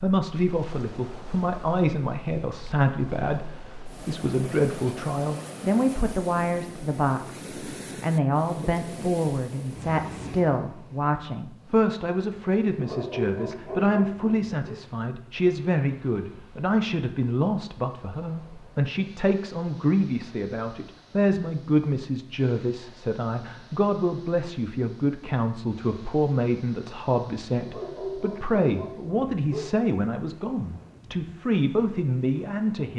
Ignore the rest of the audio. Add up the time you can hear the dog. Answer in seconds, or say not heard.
4 s.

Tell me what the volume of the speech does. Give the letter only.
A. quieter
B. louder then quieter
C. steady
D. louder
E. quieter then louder
C.